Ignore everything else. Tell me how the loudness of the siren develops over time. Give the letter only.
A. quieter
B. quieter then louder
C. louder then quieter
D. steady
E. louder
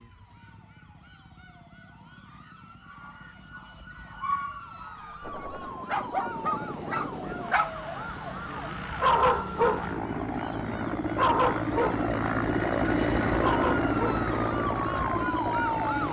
E.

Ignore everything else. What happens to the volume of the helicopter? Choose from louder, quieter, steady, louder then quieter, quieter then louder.
louder.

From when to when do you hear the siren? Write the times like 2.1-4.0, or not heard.
0.0-16.0.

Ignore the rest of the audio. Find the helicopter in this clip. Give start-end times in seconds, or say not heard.
5.2-16.0.